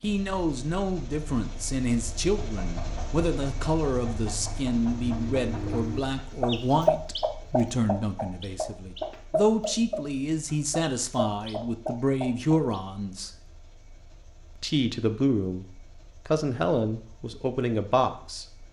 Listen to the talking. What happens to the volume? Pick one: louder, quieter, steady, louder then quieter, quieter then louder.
steady.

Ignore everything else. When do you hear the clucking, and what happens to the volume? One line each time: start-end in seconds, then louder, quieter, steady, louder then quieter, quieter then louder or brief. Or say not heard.
2.4-12.8 louder then quieter.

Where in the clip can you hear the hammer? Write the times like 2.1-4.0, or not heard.
not heard.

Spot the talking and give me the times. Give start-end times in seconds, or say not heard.
0.0-13.3, 14.6-18.6.